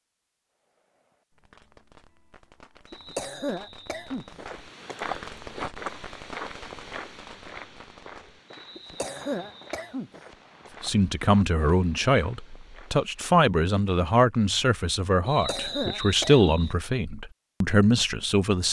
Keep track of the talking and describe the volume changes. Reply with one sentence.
The volume of the talking stays about the same.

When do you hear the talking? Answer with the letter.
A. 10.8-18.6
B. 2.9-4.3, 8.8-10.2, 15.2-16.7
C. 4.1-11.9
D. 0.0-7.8
A.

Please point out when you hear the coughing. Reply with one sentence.
The coughing can be heard from 2.9 to 4.3 s, from 8.8 to 10.2 s and from 15.2 to 16.7 s.